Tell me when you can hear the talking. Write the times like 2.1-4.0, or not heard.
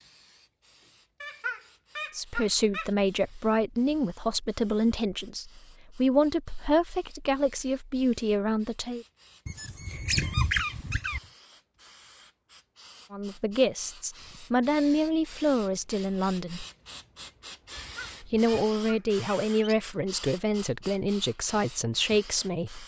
2.1-9.1, 13.1-16.6, 18.2-22.8.